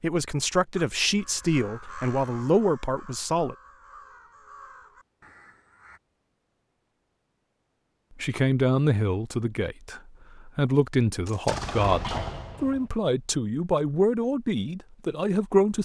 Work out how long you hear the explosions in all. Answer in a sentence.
The explosions can be heard for 2 seconds in total.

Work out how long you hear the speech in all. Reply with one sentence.
You can hear the speech for 11 seconds altogether.